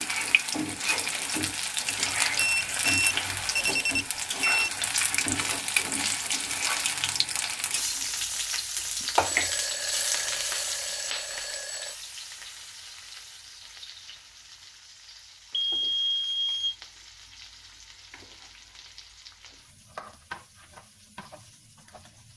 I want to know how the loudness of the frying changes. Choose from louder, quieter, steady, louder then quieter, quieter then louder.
quieter.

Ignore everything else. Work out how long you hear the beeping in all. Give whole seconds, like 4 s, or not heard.
6 s.